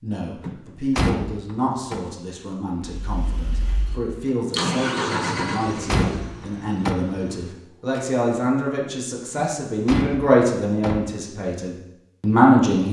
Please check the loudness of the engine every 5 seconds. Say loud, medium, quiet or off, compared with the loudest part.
loud, loud, off.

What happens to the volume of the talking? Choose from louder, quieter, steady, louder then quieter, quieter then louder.
louder.